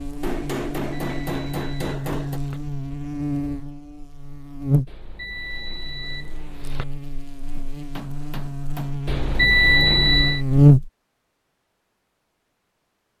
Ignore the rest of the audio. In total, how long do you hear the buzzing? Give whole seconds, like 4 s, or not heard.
11 s.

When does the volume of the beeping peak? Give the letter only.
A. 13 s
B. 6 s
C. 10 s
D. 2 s
C.